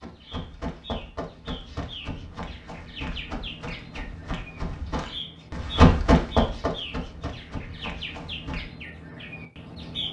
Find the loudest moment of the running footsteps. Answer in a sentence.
The volume of the running footsteps peaks at 6 seconds.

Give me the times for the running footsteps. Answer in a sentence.
The running footsteps can be heard from 0.0 to 8.7 s.